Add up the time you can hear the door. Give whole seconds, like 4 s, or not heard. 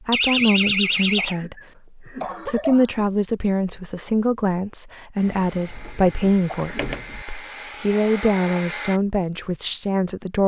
3 s.